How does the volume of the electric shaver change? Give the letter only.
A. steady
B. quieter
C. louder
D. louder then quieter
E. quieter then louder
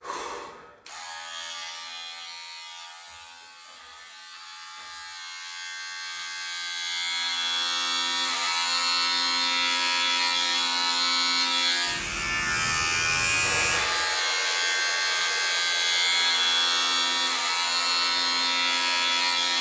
C.